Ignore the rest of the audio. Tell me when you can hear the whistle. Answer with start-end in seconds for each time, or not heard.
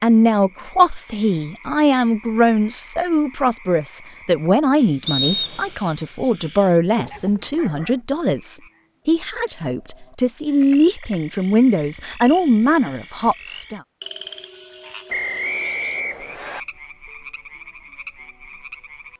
5.0-5.8, 15.1-16.6.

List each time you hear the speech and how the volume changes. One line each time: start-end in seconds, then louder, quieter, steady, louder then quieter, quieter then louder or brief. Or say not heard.
0.0-13.8 steady.